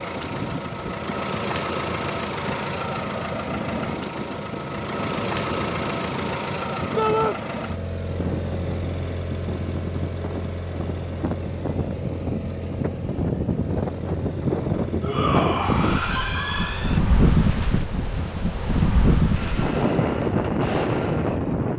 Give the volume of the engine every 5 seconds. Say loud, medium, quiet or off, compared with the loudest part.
loud, loud, medium, medium, medium.